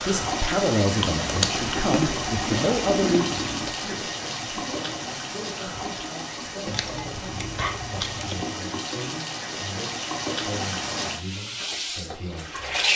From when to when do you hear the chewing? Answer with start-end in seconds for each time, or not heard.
0.9-3.8, 6.7-8.4.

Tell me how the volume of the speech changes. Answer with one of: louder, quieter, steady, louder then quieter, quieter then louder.
quieter.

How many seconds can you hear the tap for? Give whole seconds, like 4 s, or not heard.
13 s.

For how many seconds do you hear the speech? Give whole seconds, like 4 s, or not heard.
13 s.